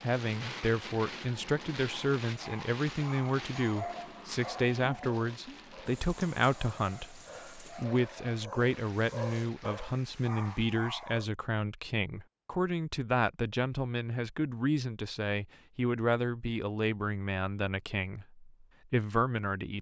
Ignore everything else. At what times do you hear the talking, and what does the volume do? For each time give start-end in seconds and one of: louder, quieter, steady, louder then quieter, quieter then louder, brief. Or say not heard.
0.0-19.7 steady.